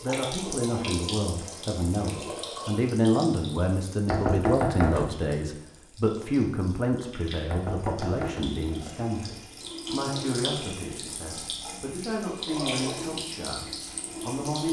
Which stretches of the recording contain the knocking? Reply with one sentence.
The knocking can be heard from 4.0 to 5.2 s and from 7.5 to 9.0 s.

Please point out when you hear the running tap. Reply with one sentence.
The running tap can be heard from 0.0 to 14.6 s.